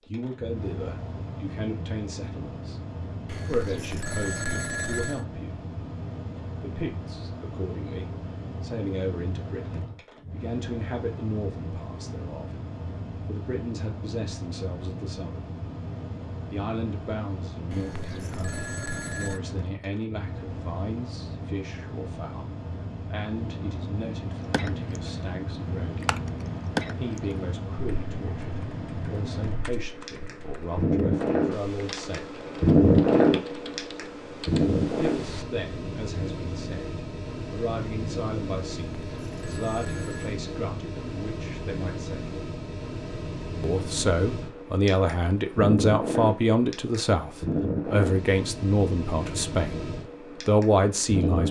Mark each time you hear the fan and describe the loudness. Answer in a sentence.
You can hear the fan from 0.0 to 51.4 s, getting louder then quieter.